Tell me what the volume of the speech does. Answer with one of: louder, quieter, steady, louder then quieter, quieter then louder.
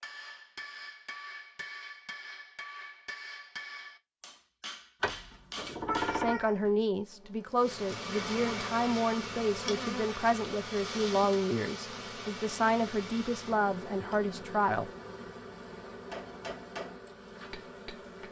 steady.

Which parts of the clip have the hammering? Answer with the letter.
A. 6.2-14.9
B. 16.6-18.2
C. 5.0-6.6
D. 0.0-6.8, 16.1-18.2
D.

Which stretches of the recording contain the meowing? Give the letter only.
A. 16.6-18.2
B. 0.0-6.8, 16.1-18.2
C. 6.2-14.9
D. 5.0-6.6
D.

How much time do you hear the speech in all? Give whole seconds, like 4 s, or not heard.
9 s.